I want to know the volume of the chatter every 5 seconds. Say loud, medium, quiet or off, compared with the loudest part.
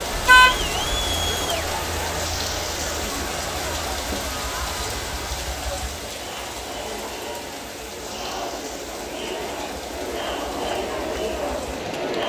loud, medium, loud.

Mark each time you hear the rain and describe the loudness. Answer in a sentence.
You can hear the rain from 0.0 to 12.2 s, getting quieter.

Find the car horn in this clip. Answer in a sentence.
The car horn can be heard from 0.1 to 1.1 s.